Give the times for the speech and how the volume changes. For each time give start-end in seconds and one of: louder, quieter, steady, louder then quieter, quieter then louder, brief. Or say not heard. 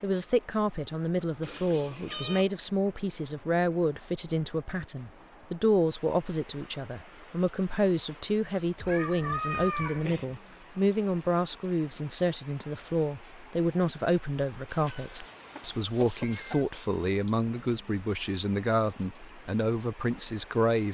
0.0-20.8 steady.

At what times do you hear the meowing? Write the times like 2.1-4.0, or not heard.
1.4-2.5, 8.8-10.3, 14.7-16.6.